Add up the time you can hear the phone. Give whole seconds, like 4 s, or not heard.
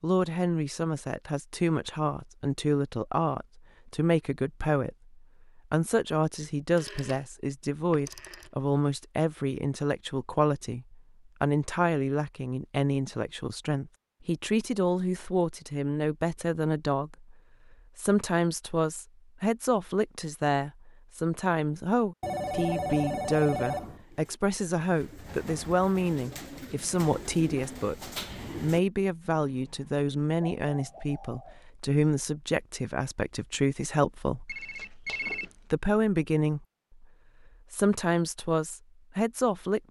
4 s.